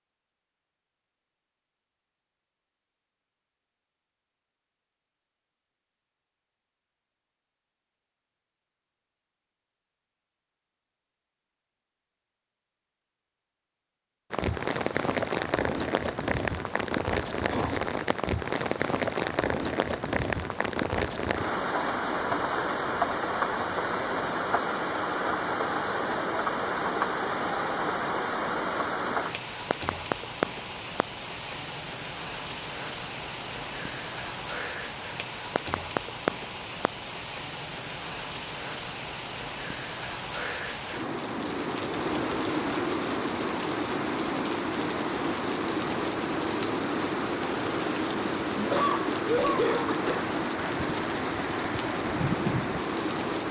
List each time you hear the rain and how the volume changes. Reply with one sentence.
You can hear the rain from 14.3 to 53.4 s, at a steady volume.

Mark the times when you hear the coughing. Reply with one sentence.
You can hear the coughing from 48.5 to 50.3 s.